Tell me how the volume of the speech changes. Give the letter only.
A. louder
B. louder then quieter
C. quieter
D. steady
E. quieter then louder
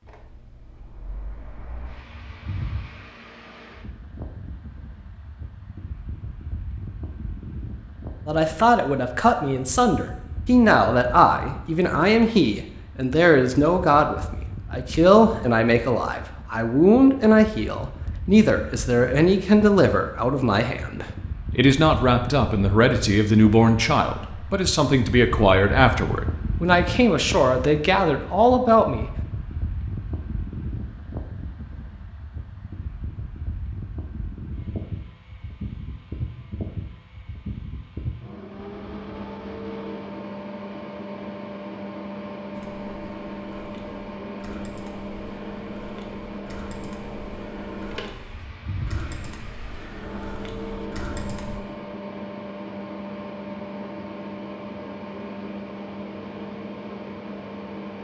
D.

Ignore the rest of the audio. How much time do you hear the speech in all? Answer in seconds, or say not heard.
21 s.